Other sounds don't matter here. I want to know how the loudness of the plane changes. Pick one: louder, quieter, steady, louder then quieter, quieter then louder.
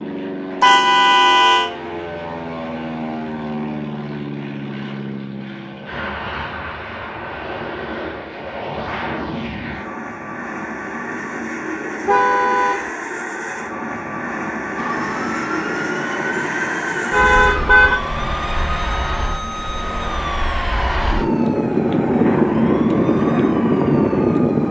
louder.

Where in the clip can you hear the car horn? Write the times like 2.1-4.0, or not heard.
0.6-1.7, 12.1-12.9, 17.1-18.0.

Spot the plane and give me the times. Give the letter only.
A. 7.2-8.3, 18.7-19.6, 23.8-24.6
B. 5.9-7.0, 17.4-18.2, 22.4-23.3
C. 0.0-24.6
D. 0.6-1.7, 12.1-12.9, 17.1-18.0
C.